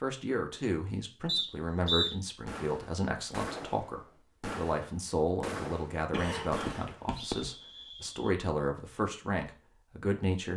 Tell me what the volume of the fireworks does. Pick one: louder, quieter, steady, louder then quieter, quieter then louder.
steady.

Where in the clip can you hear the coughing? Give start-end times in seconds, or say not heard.
6.1-7.5.